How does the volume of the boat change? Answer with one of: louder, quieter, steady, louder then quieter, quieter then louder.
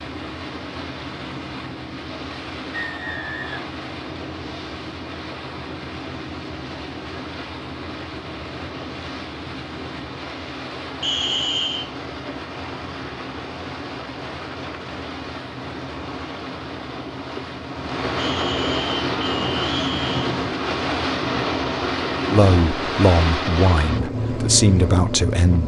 louder.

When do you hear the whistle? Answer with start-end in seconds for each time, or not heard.
2.7-3.8, 11.0-11.9, 18.1-20.4.